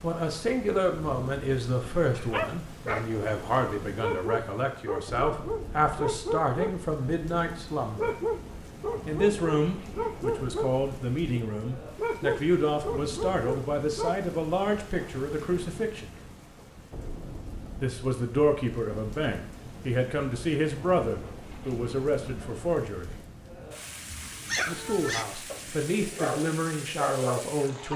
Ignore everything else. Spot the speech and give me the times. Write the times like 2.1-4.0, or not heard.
0.0-8.2, 9.1-16.1, 17.8-23.1, 24.6-27.9.